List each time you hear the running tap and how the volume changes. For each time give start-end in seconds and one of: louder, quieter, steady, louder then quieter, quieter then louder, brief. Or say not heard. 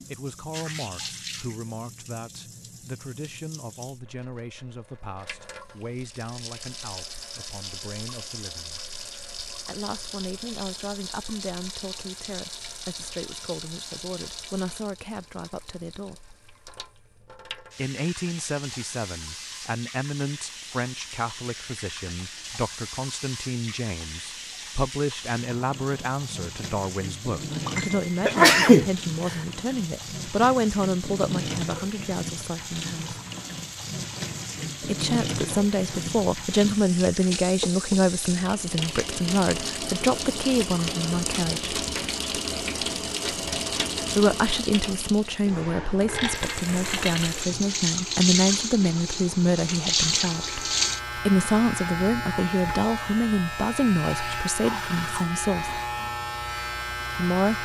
0.0-51.0 louder.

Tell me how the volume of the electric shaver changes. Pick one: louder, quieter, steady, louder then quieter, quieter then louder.
steady.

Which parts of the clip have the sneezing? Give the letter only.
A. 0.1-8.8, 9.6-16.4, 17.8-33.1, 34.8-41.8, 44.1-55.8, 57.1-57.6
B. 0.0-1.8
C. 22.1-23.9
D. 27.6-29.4
D.